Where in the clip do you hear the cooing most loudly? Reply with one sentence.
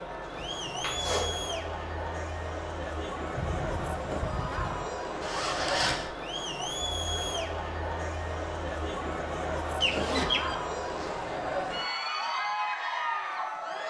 The volume of the cooing peaks at 10 seconds.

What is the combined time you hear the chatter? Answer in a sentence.
You can hear the chatter for 14 seconds altogether.